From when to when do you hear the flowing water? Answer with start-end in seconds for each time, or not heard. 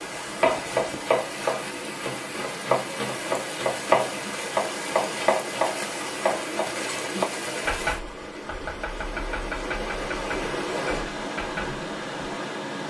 0.0-12.8.